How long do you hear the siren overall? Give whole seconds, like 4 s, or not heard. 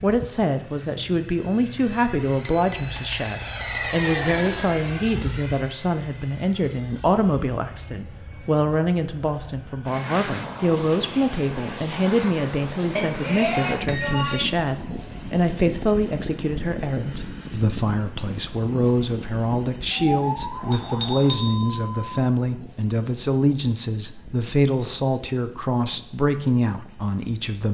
2 s.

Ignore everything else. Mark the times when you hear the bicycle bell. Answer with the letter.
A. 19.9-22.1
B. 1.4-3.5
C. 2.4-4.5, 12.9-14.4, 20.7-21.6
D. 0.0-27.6
C.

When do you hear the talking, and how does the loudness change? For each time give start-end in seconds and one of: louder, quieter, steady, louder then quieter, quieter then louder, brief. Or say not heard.
0.0-27.6 steady.